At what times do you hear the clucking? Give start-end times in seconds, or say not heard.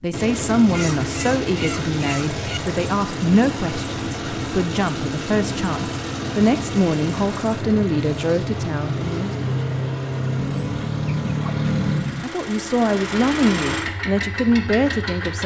0.7-2.6, 10.3-12.3.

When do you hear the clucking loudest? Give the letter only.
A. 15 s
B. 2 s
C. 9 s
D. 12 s
D.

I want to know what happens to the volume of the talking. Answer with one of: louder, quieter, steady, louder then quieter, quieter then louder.
steady.